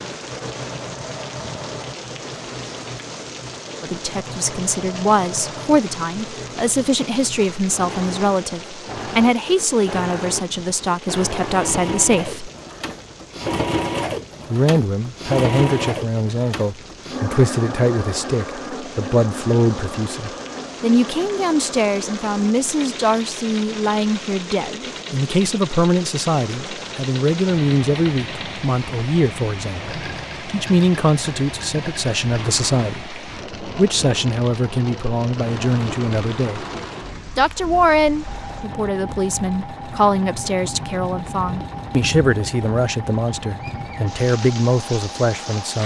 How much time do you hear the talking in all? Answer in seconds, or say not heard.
39 s.